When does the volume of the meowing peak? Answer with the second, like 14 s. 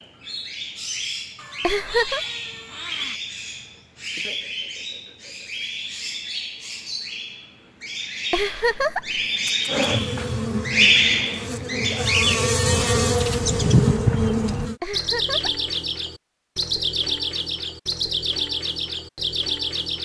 14 s.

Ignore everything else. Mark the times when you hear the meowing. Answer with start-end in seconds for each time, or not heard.
1.4-3.2, 13.5-14.3.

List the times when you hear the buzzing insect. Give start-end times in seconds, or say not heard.
9.7-14.8.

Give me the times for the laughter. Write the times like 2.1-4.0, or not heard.
1.6-2.2, 8.3-9.2, 14.8-15.7.